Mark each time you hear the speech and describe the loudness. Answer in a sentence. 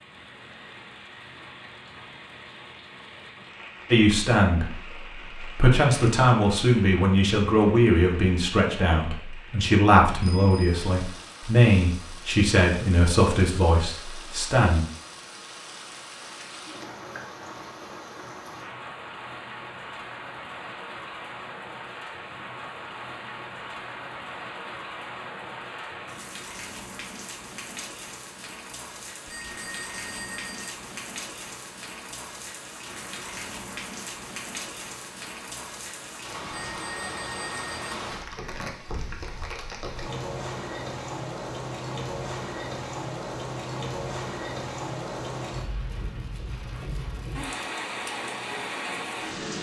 The speech can be heard from 3.9 to 14.8 s, at a steady volume.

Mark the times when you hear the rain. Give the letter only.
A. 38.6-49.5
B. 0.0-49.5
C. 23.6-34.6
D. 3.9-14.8
B.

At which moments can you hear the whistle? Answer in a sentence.
The whistle can't be heard in this clip.